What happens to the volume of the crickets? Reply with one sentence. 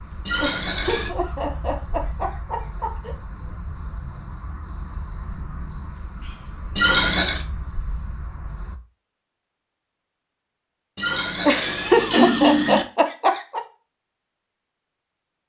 The loudness of the crickets stays about the same.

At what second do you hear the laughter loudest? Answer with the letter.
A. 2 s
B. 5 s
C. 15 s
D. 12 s
D.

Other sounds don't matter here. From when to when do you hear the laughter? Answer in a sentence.
You can hear the laughter from 0.4 to 3.1 s and from 11.4 to 13.6 s.